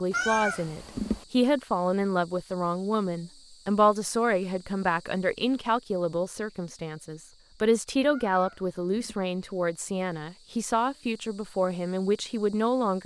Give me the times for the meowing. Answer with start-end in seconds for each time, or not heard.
0.1-1.2, 8.1-9.2.